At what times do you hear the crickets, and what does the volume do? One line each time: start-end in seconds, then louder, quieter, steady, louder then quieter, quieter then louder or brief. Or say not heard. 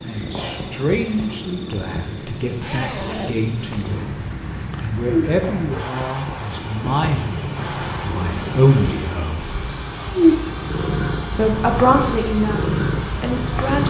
0.0-13.8 steady.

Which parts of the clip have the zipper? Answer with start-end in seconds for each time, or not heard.
2.6-4.0.